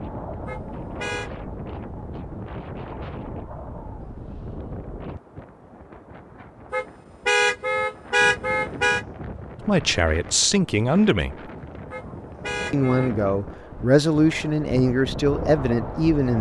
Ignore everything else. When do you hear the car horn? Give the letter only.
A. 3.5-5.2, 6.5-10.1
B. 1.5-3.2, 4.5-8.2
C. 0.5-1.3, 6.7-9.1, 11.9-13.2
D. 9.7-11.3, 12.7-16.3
C.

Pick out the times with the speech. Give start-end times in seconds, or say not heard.
9.7-11.3, 12.7-16.3.